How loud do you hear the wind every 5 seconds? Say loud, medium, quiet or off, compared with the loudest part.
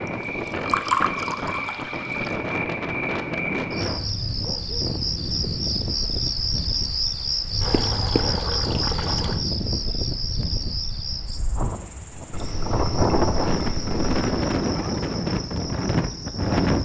medium, medium, loud, loud.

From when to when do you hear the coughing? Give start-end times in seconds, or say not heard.
not heard.